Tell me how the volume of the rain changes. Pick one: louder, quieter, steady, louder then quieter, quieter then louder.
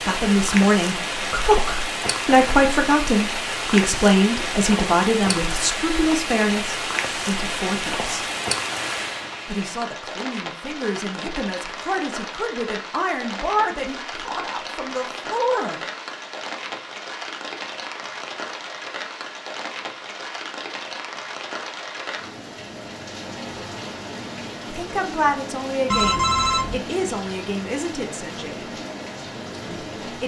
quieter.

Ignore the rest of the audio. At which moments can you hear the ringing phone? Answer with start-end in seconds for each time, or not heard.
25.9-26.8.